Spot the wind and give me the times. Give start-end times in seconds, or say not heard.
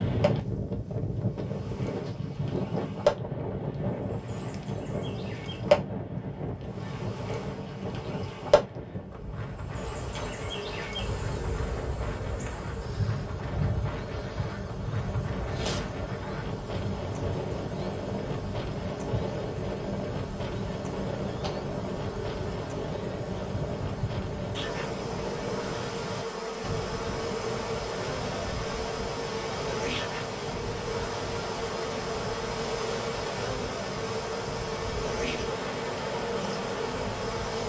0.0-37.6.